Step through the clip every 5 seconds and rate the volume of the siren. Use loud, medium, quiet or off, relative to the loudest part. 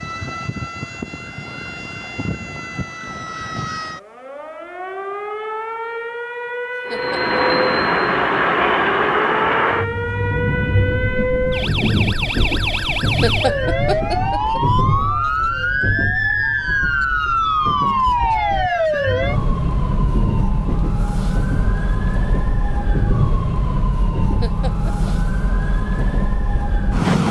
medium, medium, loud, loud, medium, loud.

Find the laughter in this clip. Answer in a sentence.
You can hear the laughter from 6.9 to 7.4 s, from 13.2 to 14.6 s and from 24.4 to 25.1 s.